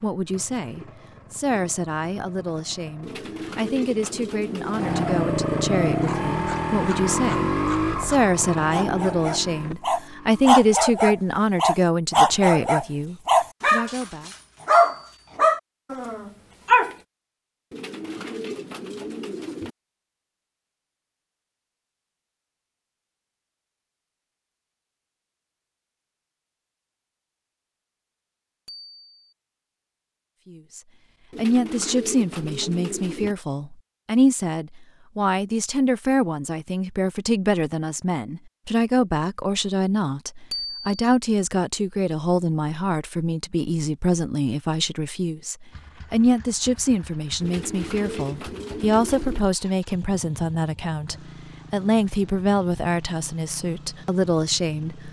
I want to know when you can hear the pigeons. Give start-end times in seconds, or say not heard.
3.0-5.0, 17.7-19.8, 31.3-33.4, 47.4-49.4.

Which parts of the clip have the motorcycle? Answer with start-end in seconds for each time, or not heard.
0.0-10.6, 45.7-55.0.